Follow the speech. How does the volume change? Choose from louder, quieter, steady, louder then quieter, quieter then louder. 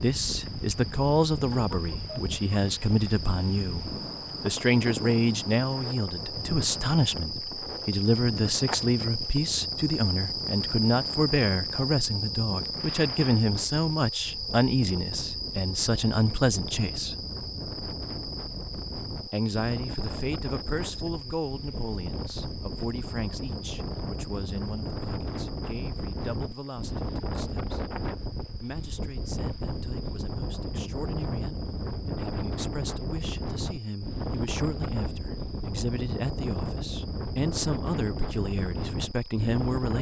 quieter then louder.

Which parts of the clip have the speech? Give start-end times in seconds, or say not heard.
0.0-17.2, 19.3-27.8, 28.6-39.9.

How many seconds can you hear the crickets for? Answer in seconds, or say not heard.
40 s.